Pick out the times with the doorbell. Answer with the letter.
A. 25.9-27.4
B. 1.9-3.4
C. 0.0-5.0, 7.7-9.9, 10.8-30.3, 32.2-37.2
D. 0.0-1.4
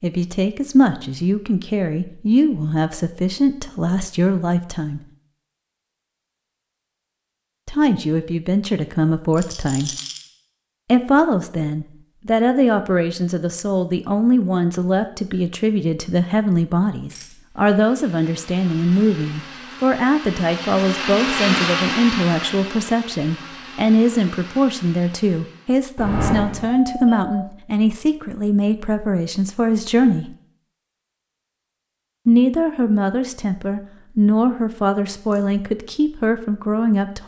A.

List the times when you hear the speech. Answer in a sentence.
You can hear the speech from 0.0 to 5.0 s, from 7.7 to 9.9 s, from 10.8 to 30.3 s and from 32.2 to 37.2 s.